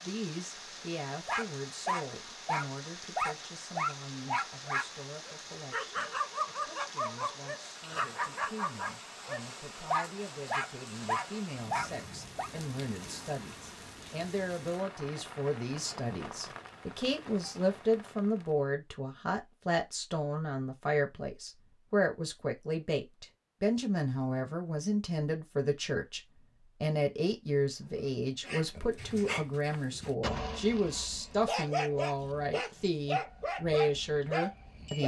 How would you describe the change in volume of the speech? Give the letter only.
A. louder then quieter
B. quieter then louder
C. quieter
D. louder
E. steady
D.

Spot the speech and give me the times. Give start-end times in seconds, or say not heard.
0.0-26.2, 26.8-35.0.